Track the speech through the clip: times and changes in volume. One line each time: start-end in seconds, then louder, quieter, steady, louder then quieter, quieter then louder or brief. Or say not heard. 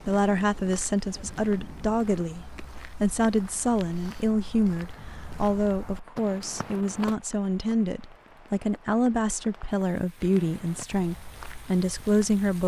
0.0-12.6 steady.